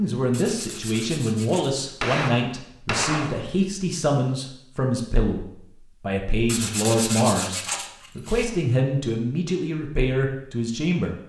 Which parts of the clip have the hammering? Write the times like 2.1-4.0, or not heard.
2.0-3.5.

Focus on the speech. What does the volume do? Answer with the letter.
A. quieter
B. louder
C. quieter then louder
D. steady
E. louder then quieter
D.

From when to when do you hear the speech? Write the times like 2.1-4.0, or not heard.
0.0-11.2.